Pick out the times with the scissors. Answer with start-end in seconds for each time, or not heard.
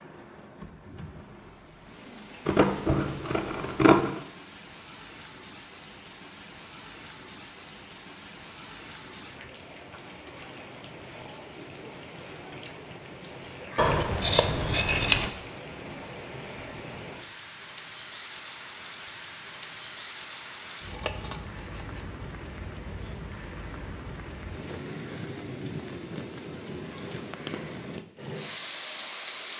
2.5-4.2, 13.8-15.3, 20.9-22.2.